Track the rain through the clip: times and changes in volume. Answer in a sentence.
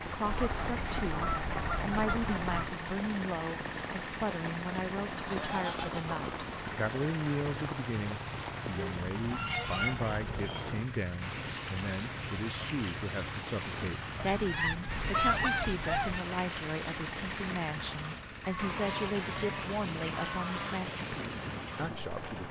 You can hear the rain from 0.0 to 22.4 s, at a steady volume.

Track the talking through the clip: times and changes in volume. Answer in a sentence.
The talking can be heard from 0.0 to 22.4 s, at a steady volume.